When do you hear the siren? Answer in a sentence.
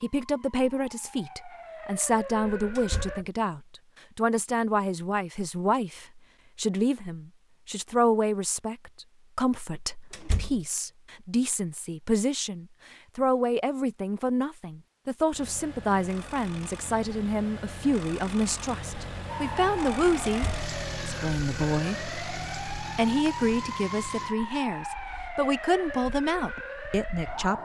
The siren can be heard from 0.2 to 3.2 s and from 19.2 to 27.5 s.